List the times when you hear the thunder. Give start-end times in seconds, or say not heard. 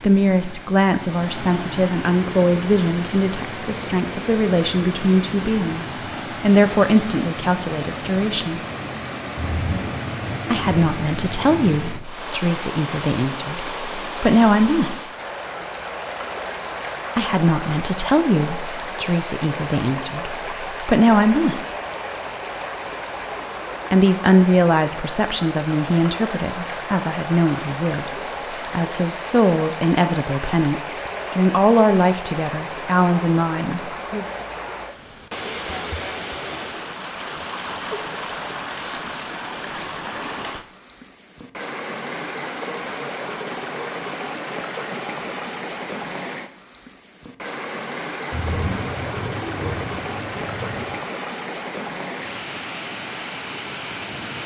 9.3-12.0, 48.3-51.0.